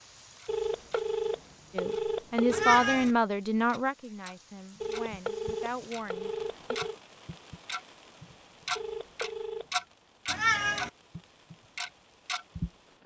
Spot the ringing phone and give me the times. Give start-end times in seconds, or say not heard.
0.5-2.8, 4.8-7.0, 8.8-9.8.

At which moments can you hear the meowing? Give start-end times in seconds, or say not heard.
2.5-3.1, 10.2-10.9.